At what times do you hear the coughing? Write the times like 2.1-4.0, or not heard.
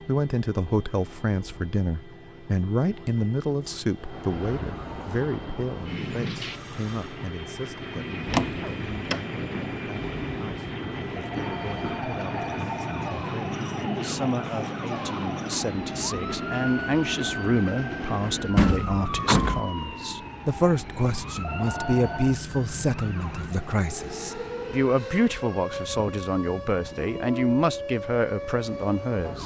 not heard.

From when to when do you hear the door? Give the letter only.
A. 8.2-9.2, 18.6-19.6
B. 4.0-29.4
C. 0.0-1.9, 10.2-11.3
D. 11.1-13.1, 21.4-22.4
A.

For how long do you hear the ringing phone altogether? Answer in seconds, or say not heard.
3 s.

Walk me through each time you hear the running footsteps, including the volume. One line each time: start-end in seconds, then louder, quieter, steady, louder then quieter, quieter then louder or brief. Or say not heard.
not heard.